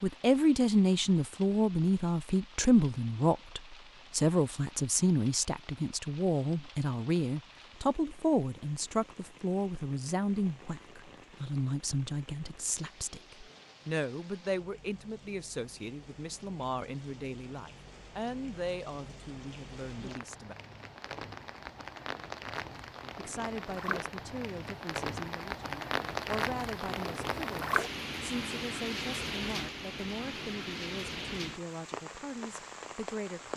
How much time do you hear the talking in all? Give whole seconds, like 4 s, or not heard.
31 s.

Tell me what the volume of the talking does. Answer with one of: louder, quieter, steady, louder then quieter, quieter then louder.
quieter.